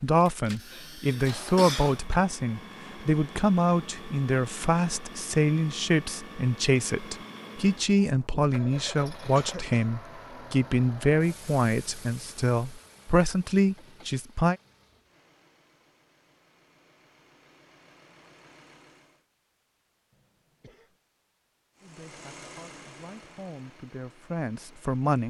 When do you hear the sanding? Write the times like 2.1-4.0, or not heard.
not heard.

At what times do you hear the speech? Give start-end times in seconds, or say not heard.
0.0-14.6, 21.8-25.2.